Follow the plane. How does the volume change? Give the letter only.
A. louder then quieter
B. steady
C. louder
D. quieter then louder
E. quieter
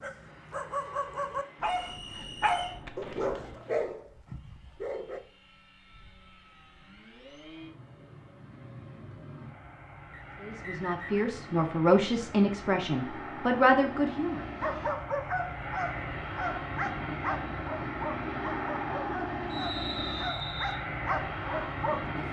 C.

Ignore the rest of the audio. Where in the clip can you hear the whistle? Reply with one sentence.
You can hear the whistle from 1.6 to 2.9 s, from 10.1 to 11.3 s and from 19.5 to 20.8 s.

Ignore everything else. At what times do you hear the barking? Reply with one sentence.
The barking can be heard from 0.0 to 5.2 s and from 14.6 to 22.2 s.